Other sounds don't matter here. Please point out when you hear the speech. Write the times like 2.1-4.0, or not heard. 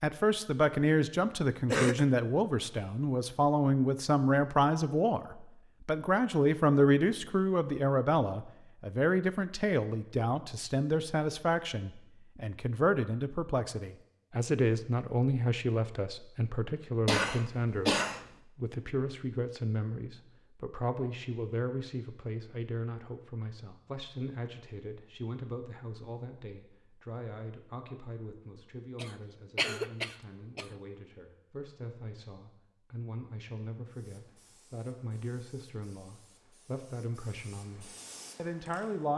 0.0-17.9, 18.6-39.1.